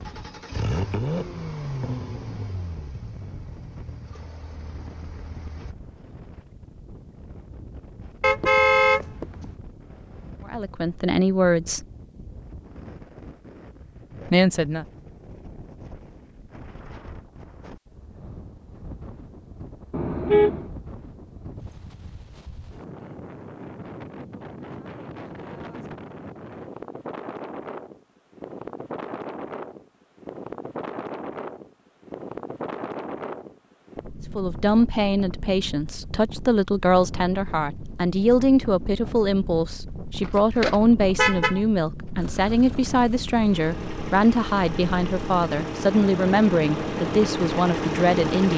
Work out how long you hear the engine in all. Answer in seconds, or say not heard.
12 s.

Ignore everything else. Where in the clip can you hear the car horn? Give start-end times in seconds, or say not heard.
8.2-9.6, 19.9-20.7, 40.2-41.6.